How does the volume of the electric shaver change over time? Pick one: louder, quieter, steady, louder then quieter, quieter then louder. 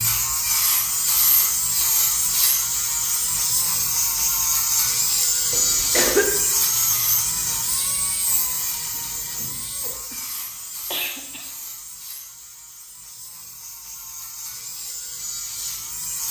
quieter.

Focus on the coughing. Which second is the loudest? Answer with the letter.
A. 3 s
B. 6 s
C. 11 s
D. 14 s
B.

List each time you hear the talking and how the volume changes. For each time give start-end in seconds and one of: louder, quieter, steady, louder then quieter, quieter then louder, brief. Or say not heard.
not heard.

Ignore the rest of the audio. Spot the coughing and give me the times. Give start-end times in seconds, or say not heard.
5.5-6.3, 9.8-11.5.